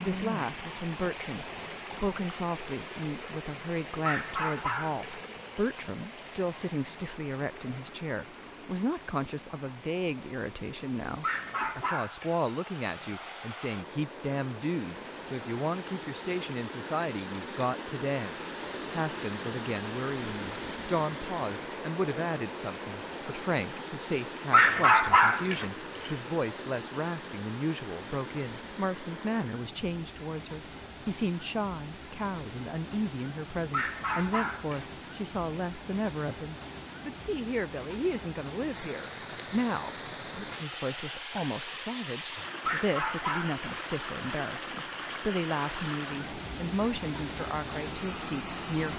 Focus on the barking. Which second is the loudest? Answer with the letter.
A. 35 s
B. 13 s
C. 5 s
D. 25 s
D.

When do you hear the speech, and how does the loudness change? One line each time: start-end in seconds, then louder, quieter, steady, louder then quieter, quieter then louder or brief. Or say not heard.
0.0-48.9 steady.